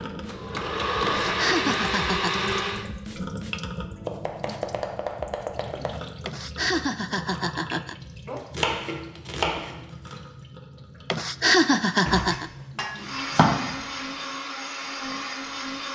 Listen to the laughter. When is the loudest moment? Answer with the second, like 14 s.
12 s.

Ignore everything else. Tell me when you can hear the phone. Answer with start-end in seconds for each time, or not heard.
not heard.